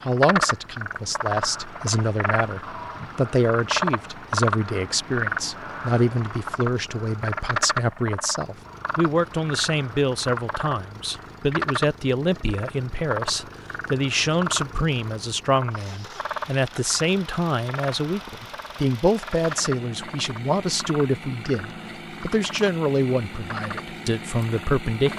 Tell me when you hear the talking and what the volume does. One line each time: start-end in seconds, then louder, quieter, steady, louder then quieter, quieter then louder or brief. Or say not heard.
0.0-25.1 steady.